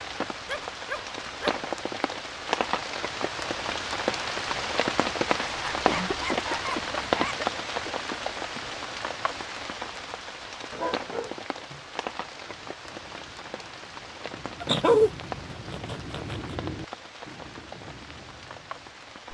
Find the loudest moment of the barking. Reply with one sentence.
The volume of the barking peaks at 15 seconds.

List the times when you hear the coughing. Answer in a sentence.
The coughing can be heard from 5.8 to 8.0 s.